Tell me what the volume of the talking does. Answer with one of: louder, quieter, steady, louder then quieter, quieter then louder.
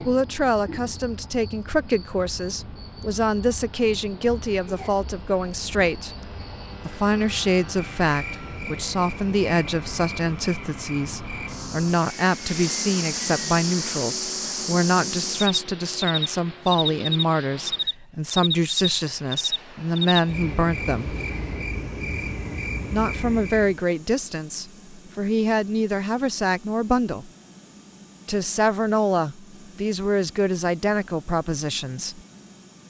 steady.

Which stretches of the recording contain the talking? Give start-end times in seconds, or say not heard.
0.1-6.2, 6.8-21.1, 22.9-27.3, 28.2-32.2.